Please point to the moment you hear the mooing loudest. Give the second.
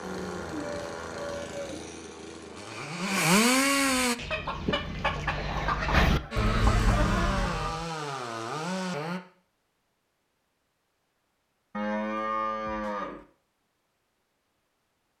12 s.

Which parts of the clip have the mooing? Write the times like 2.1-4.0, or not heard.
0.0-1.9, 6.1-7.8, 11.7-13.2.